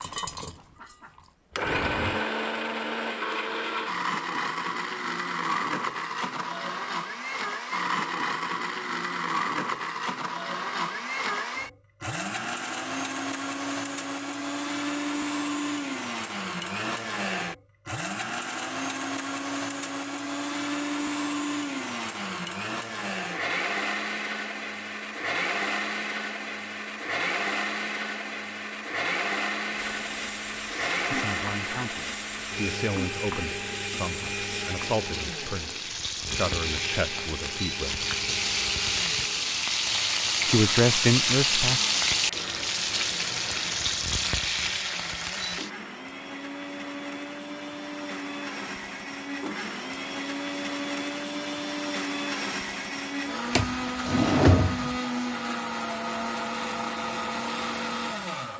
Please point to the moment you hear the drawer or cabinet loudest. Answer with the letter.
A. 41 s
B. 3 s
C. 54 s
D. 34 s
C.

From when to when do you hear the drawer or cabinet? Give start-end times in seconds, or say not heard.
1.6-2.2, 53.5-55.0.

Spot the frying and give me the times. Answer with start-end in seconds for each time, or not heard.
29.7-45.7.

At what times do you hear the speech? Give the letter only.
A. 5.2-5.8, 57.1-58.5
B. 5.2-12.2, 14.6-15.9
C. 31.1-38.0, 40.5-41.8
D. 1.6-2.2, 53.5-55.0
C.